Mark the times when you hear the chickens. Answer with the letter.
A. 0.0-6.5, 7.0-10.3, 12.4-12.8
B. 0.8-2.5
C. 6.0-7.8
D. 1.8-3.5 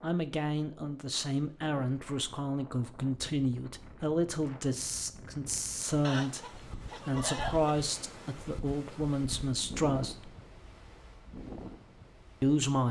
C.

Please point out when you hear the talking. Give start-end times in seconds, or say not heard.
0.0-6.5, 7.0-10.3, 12.4-12.8.